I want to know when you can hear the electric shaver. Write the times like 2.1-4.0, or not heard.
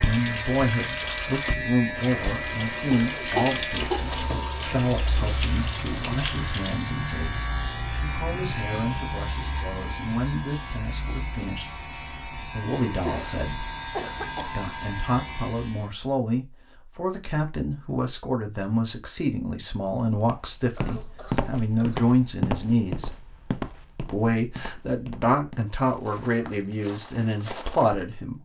0.0-15.9.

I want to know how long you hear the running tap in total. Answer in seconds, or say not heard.
7 s.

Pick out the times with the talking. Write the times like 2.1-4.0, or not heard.
0.0-13.7, 14.4-23.1, 24.1-28.4.